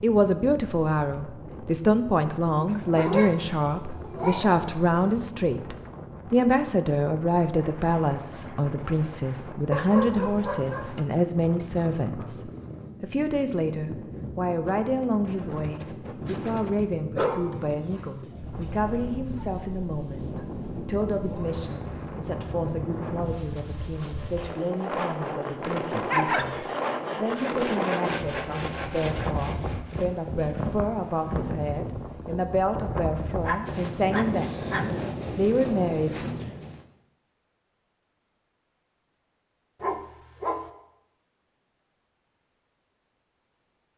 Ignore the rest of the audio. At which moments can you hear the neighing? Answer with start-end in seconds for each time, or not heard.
not heard.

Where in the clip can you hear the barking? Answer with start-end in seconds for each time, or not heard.
2.5-4.7, 9.7-10.9, 16.9-19.6, 25.4-26.7, 33.4-34.9, 39.8-40.6.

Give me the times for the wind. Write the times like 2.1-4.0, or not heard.
0.0-36.9.